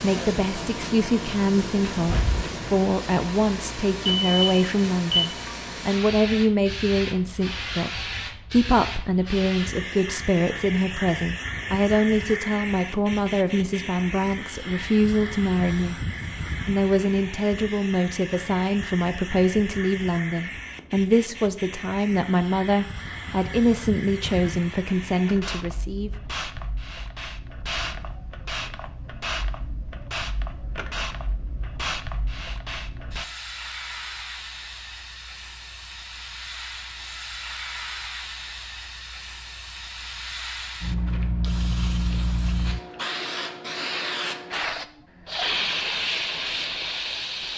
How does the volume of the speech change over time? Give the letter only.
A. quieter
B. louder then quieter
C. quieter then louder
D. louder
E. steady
E.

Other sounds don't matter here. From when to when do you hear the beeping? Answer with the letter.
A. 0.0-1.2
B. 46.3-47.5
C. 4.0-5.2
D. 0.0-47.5
C.